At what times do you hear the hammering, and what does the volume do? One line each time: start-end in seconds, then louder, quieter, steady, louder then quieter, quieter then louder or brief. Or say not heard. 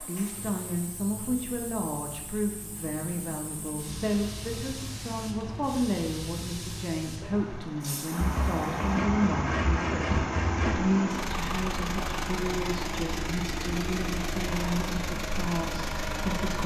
not heard.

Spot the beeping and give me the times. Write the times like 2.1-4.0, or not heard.
not heard.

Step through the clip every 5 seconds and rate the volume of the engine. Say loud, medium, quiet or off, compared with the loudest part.
quiet, loud, loud, loud.